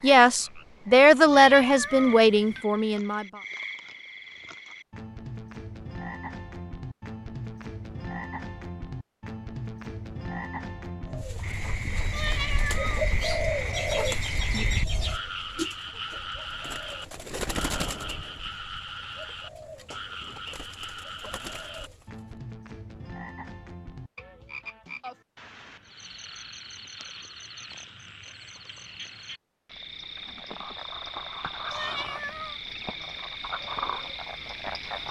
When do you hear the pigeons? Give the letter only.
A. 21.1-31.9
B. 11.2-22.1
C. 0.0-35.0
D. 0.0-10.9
B.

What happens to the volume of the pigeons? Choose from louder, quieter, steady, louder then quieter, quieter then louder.
quieter.